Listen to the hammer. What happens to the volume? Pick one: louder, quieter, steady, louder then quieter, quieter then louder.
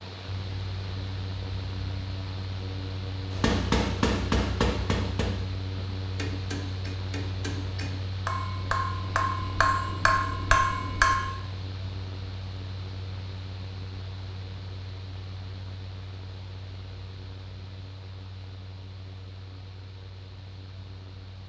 quieter then louder.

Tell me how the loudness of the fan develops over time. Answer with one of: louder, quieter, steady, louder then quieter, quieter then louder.
quieter.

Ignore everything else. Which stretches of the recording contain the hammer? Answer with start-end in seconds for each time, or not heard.
3.3-11.2.